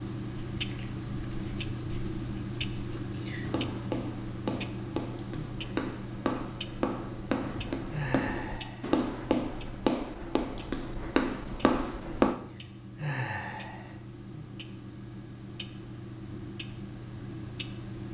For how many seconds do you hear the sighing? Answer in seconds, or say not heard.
3 s.